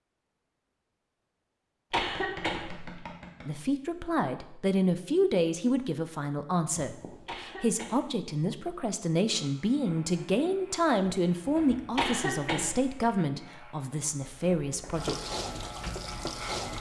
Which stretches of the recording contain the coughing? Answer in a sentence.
You can hear the coughing from 1.9 to 3.0 s, from 7.2 to 8.2 s and from 11.9 to 12.9 s.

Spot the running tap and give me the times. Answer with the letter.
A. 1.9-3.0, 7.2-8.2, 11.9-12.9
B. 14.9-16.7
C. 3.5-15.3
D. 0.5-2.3
B.